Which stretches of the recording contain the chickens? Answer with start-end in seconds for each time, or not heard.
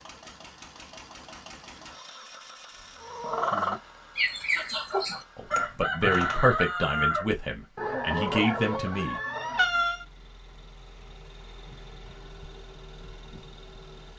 3.0-10.1.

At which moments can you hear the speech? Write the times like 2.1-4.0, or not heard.
5.3-9.2.